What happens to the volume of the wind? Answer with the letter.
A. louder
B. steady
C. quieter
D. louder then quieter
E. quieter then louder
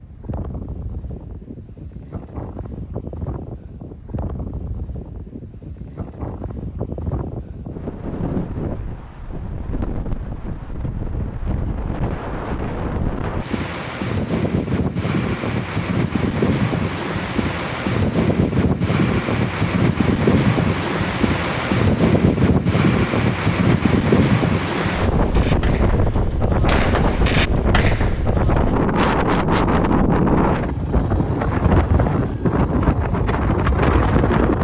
A.